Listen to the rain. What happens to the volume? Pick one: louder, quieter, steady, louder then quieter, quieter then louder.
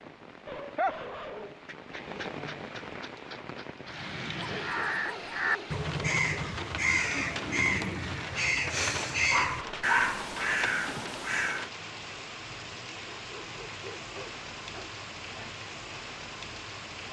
steady.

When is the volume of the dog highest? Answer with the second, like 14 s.
10 s.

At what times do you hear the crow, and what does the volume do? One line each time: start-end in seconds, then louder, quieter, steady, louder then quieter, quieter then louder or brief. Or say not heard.
4.5-11.7 steady.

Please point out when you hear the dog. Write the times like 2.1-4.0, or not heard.
0.5-2.7, 4.3-6.3, 9.3-10.2, 13.2-15.0.